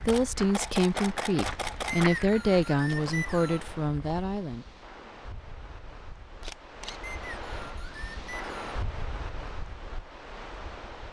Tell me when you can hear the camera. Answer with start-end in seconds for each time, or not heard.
0.1-2.1, 6.4-7.0.